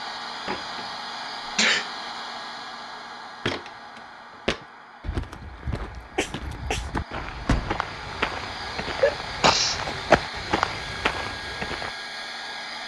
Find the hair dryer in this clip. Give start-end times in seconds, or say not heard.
0.0-12.8.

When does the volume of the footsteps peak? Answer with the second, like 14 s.
10 s.